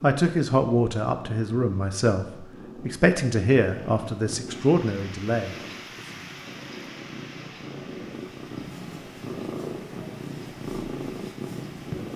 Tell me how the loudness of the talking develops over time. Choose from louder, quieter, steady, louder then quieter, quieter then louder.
steady.